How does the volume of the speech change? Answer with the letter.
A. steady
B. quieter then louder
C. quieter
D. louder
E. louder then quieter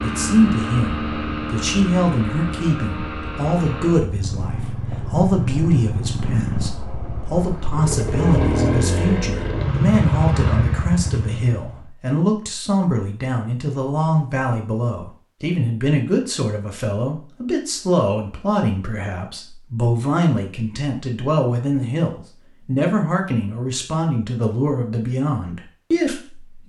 A.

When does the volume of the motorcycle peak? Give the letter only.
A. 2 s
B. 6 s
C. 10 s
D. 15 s
C.